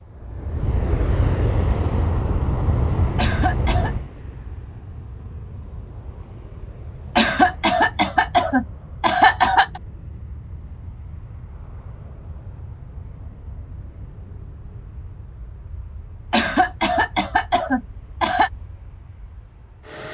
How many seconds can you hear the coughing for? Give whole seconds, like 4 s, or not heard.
6 s.